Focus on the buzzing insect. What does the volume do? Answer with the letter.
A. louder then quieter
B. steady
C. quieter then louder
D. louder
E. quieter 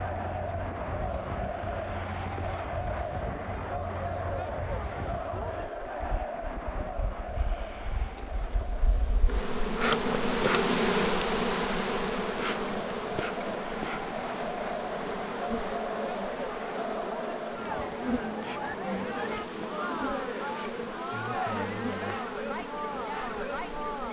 A.